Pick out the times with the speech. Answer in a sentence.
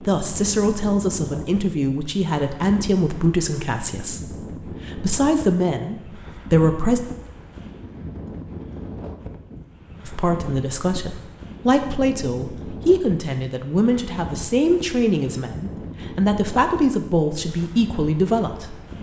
You can hear the speech from 0.1 to 7.0 s and from 10.1 to 18.8 s.